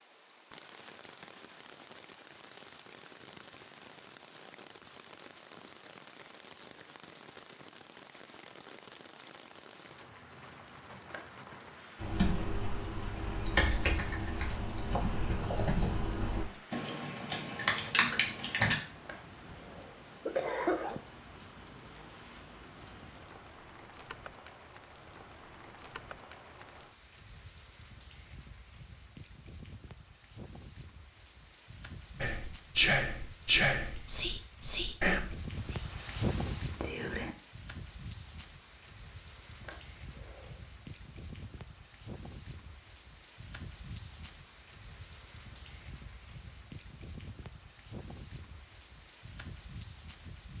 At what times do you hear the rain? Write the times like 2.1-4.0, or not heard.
0.0-50.5.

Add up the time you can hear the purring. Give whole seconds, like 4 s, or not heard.
not heard.